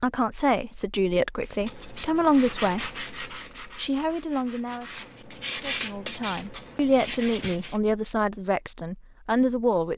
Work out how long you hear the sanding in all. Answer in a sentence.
You can hear the sanding for 6 seconds altogether.